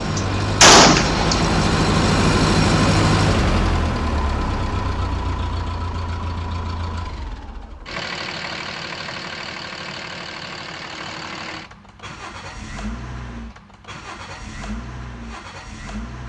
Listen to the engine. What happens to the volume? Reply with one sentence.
The volume of the engine goes down.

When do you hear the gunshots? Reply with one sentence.
You can hear the gunshots from 0.1 to 1.6 s.